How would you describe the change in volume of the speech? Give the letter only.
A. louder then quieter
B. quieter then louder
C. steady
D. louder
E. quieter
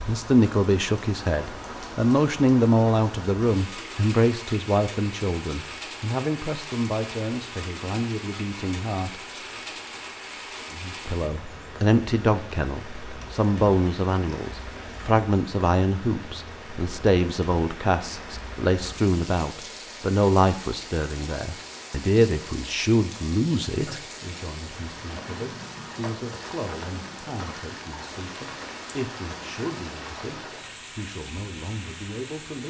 E.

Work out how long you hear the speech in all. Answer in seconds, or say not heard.
31 s.